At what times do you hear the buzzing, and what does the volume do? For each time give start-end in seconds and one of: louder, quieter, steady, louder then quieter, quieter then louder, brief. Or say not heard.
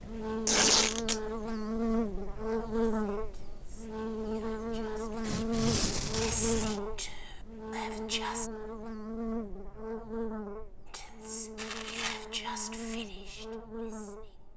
0.0-14.5 quieter.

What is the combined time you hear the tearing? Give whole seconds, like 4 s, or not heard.
3 s.